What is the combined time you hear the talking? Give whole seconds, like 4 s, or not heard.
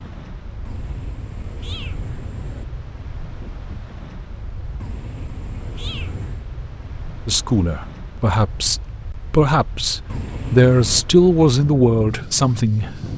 6 s.